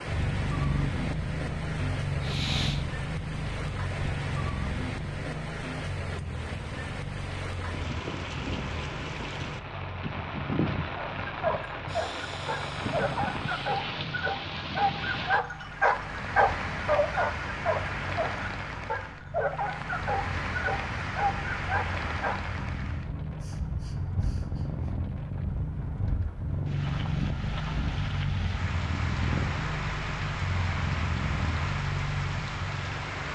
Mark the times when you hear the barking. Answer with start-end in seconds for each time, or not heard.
10.9-22.4.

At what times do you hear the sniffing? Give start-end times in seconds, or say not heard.
2.2-2.9, 11.8-13.6, 23.4-24.9.